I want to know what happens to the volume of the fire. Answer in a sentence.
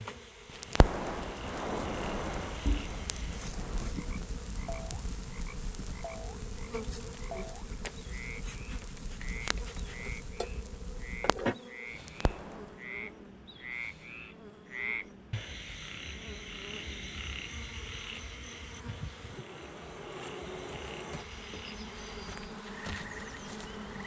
The loudness of the fire goes down.